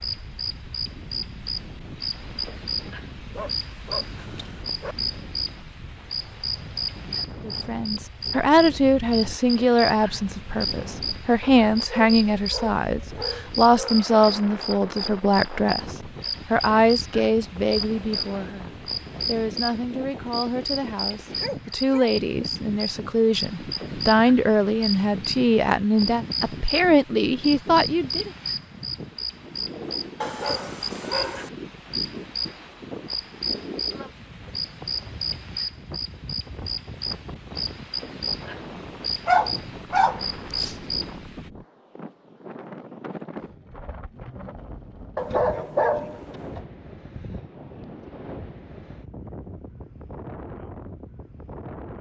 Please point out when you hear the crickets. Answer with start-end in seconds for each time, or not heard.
0.0-41.4.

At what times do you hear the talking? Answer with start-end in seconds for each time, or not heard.
7.4-28.3.